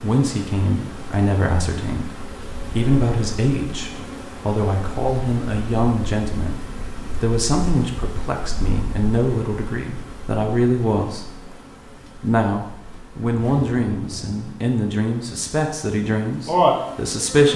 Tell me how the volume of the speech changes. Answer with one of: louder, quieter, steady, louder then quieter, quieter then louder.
steady.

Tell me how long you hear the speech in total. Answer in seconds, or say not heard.
16 s.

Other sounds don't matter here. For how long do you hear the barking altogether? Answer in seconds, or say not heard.
not heard.